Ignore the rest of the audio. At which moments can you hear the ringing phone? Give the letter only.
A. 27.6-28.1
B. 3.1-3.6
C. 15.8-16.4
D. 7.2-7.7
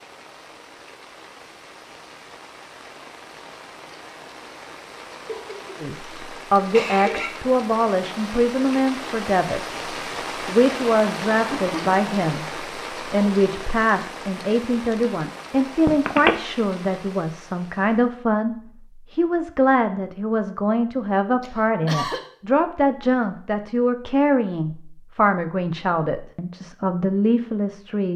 C.